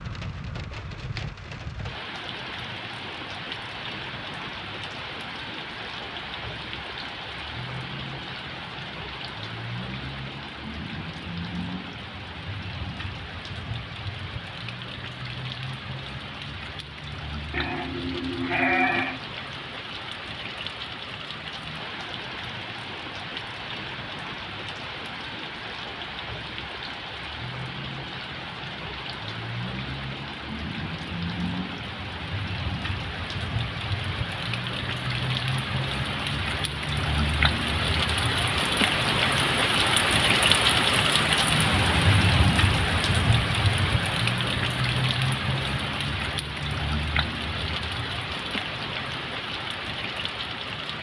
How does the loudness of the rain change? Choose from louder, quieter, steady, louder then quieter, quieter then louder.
louder.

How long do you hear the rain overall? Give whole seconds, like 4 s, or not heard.
51 s.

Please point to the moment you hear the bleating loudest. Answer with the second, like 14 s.
19 s.